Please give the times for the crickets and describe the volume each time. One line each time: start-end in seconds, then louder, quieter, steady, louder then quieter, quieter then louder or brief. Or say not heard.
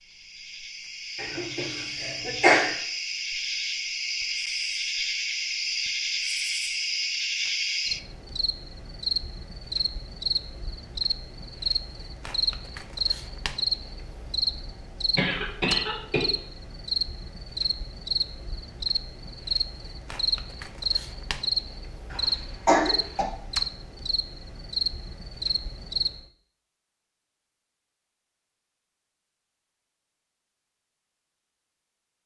0.1-26.2 steady.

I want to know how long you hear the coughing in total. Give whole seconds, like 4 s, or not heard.
4 s.